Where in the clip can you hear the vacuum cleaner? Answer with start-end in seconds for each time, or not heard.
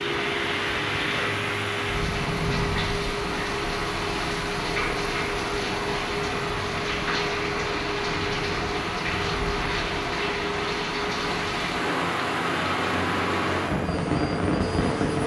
0.0-15.2.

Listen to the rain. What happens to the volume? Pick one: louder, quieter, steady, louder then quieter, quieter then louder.
steady.